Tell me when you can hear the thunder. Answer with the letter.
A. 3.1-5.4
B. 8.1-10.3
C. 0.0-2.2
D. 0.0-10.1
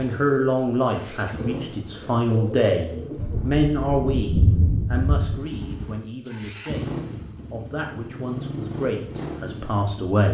A.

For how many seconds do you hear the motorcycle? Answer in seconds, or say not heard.
10 s.